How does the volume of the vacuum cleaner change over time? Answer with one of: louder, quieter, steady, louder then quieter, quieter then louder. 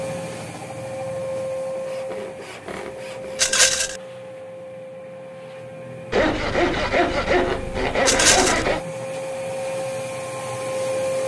quieter then louder.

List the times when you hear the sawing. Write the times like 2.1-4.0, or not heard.
1.8-3.6, 6.1-8.8.